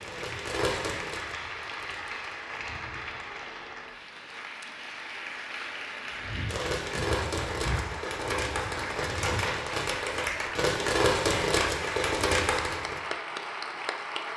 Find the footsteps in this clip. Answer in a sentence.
The footsteps can be heard from 6.2 to 9.7 s.